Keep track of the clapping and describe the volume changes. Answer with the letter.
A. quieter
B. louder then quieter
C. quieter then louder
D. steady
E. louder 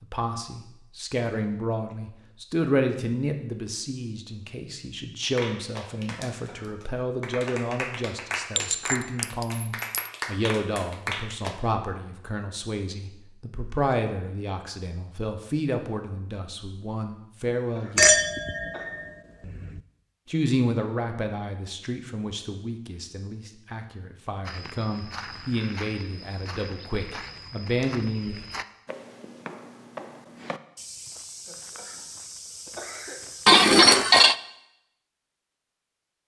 E.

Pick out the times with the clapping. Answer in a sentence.
You can hear the clapping from 5.2 to 11.6 s.